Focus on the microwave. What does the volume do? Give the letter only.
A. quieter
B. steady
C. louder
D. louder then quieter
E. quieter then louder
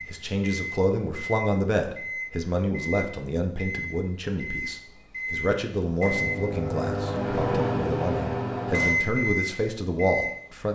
C.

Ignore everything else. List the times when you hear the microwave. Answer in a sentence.
The microwave can be heard from 0.0 to 10.7 s.